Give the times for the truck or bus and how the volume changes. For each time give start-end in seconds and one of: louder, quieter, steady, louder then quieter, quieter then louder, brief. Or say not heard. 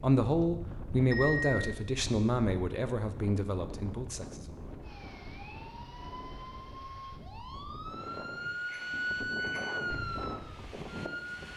not heard.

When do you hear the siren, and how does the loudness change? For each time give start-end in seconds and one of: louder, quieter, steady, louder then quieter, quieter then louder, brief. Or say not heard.
4.8-11.5 louder then quieter.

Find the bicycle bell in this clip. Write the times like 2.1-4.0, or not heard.
1.1-1.6, 8.7-9.8.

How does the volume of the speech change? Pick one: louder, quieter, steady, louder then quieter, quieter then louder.
quieter.